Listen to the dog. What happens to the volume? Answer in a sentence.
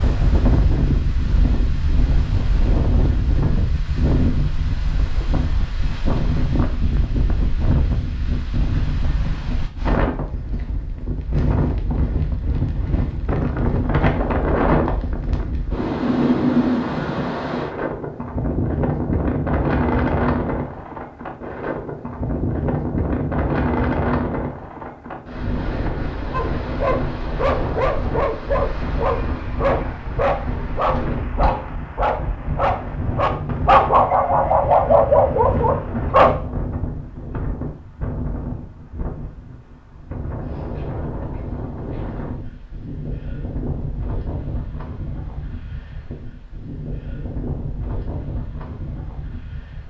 The loudness of the dog goes up.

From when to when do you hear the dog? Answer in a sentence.
You can hear the dog from 26.3 to 36.4 s.